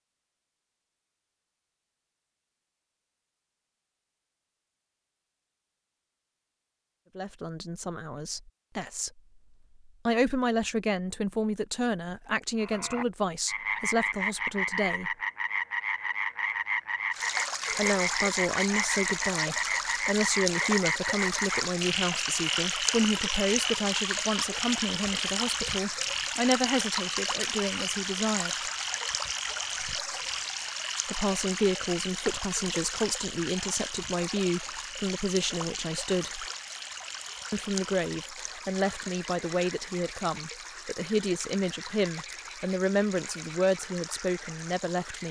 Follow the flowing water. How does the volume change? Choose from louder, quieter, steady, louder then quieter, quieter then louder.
quieter.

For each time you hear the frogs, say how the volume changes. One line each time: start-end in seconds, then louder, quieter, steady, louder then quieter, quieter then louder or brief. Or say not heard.
12.6-45.2 quieter.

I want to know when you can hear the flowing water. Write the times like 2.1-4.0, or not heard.
17.1-45.2.